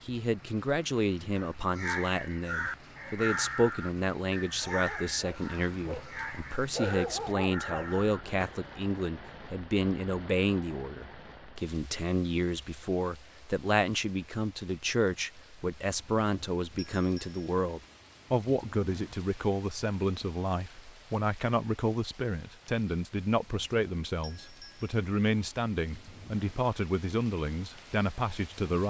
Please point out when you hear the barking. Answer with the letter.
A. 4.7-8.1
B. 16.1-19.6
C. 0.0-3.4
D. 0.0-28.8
A.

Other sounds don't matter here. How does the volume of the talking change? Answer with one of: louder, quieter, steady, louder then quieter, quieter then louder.
steady.